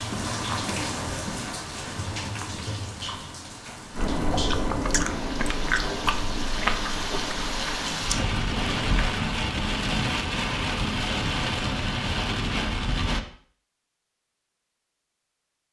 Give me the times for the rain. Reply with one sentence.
The rain can be heard from 0.0 to 13.2 s.